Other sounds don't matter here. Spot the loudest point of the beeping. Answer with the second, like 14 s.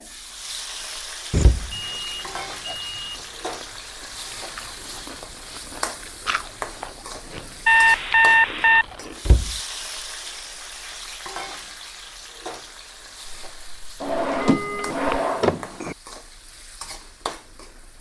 8 s.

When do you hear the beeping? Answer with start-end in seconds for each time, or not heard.
1.3-3.1, 7.7-8.8, 13.2-15.2.